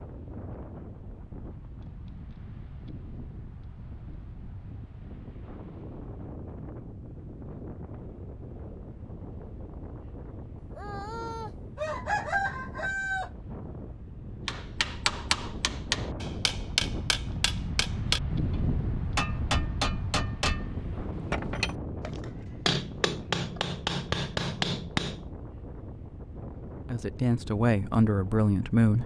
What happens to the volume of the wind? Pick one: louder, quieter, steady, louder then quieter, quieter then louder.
louder then quieter.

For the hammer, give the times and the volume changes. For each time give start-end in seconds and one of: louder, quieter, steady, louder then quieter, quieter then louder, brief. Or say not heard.
14.4-25.2 steady.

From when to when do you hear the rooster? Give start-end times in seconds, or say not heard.
10.6-13.3.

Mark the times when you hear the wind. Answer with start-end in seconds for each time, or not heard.
0.0-29.0.